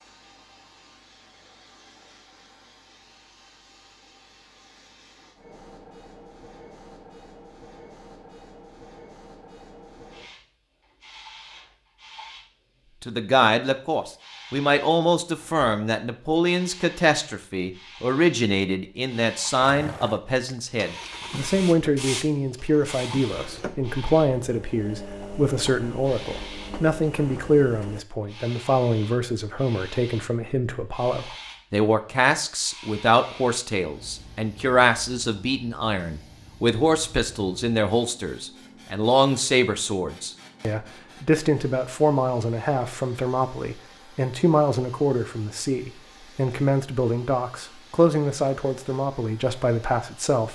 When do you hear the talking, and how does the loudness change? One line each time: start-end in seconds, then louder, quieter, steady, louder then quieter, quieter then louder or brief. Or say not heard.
13.0-50.5 steady.